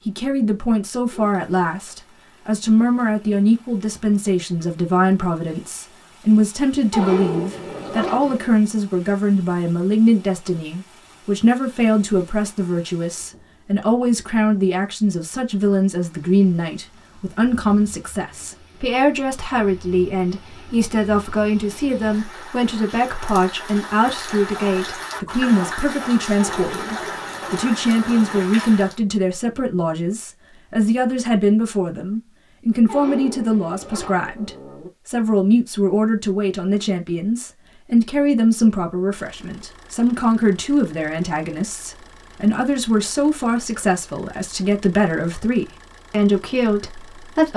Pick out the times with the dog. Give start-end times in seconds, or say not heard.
6.9-8.6, 26.4-28.4, 32.9-34.9.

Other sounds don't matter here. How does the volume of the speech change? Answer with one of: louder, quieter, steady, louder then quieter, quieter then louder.
steady.